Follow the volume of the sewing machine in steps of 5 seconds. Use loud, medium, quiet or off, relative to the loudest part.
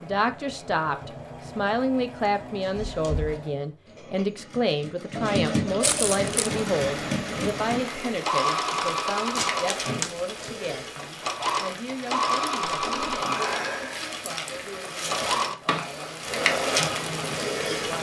quiet, loud, loud, loud.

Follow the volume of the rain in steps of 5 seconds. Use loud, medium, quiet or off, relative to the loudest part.
off, medium, medium, loud.